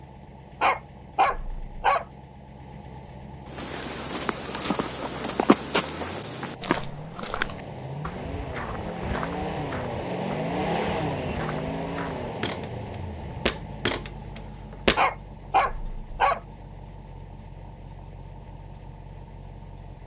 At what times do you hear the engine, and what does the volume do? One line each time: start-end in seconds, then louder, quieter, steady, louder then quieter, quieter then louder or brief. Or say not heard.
0.0-20.0 louder then quieter.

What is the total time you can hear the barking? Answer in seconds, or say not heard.
3 s.